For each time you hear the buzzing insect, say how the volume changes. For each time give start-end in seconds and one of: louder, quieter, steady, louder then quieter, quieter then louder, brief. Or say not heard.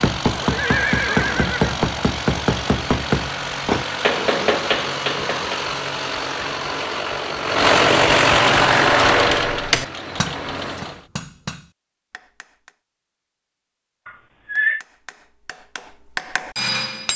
not heard.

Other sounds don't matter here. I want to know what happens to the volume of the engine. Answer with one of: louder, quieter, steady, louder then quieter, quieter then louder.
louder.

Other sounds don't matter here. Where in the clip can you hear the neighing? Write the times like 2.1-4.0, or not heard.
0.4-1.8, 14.1-14.8.